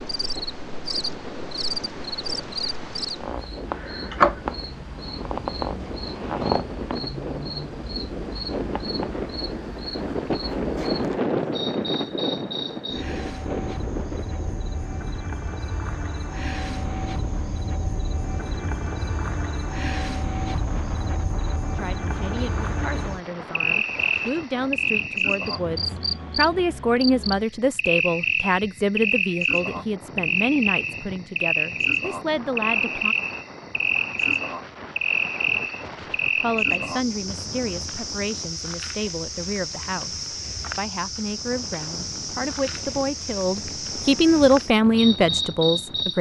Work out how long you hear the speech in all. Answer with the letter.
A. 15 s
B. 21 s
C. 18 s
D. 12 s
B.